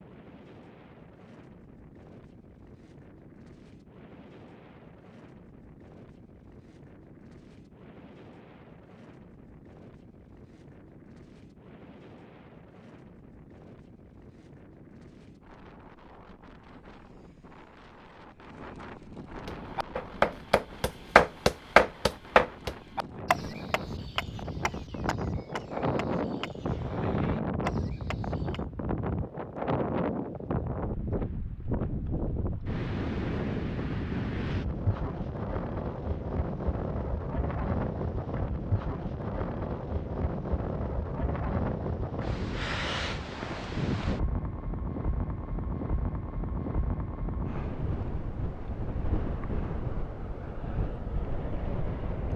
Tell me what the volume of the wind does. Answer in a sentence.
The loudness of the wind goes up.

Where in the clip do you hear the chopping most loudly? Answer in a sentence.
The volume of the chopping peaks at 22 seconds.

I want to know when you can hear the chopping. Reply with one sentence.
You can hear the chopping from 19.4 to 28.6 s.